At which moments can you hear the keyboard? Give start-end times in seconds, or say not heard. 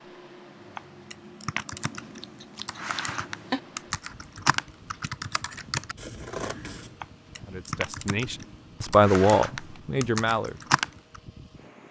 0.6-11.2.